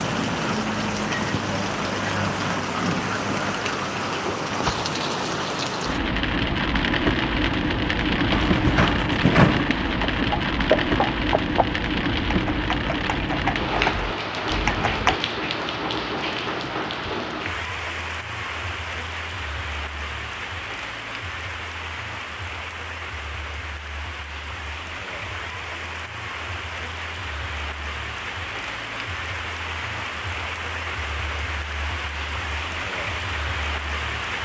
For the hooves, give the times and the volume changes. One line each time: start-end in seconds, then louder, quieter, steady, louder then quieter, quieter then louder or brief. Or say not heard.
8.3-15.2 quieter then louder.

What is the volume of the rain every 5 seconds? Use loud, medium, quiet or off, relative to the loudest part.
loud, loud, loud, medium, medium, medium, medium.